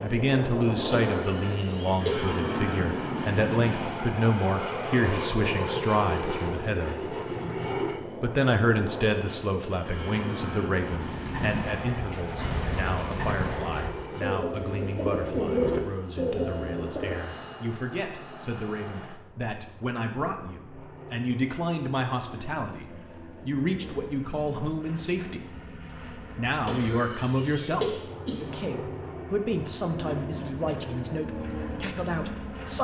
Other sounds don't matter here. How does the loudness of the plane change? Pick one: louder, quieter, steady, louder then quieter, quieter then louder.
quieter then louder.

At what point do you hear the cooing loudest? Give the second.
16 s.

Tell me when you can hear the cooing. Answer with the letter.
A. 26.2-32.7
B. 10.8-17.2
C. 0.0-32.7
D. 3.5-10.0
B.